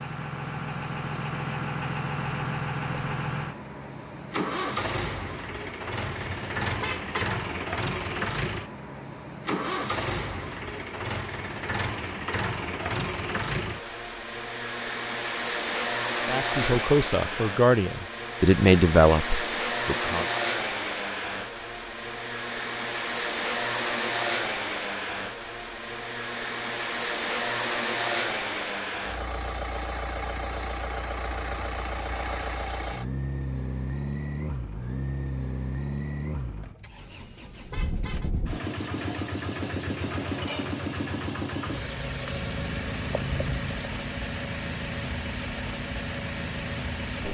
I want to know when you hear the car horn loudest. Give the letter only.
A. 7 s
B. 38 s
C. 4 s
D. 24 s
A.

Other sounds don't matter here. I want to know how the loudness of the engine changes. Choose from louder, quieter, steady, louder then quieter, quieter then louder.
steady.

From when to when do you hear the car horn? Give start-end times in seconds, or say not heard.
6.0-7.3, 37.0-38.3.